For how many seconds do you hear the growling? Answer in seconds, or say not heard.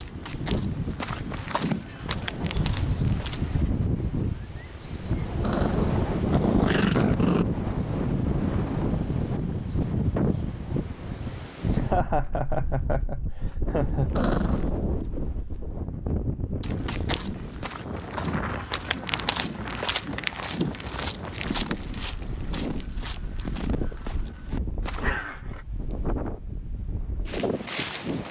3 s.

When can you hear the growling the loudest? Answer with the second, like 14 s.
7 s.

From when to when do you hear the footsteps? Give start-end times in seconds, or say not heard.
0.0-3.5, 16.6-25.2.